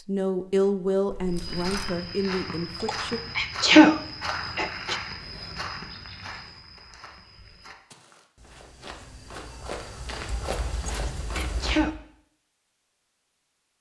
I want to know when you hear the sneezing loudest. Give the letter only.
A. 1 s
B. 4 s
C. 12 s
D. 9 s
B.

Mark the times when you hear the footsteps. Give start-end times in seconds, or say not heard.
1.2-11.8.